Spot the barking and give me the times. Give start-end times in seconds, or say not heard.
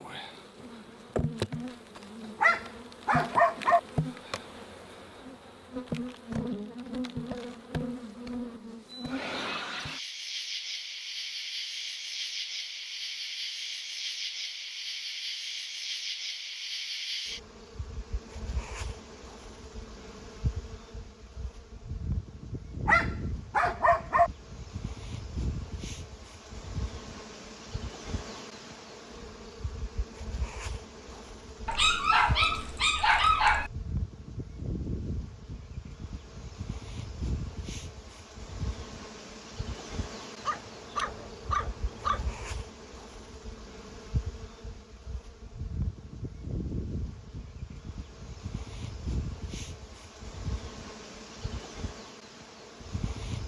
2.4-3.8, 22.9-24.3, 31.6-33.7, 40.4-42.5.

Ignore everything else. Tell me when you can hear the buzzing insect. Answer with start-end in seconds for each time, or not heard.
0.0-53.4.